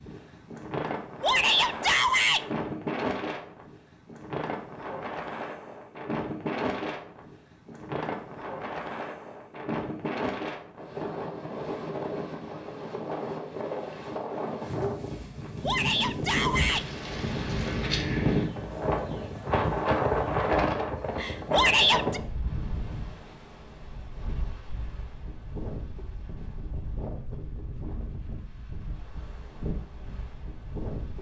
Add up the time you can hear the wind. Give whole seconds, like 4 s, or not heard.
31 s.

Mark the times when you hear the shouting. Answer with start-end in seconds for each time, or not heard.
1.2-2.5, 15.6-16.9, 21.5-22.2.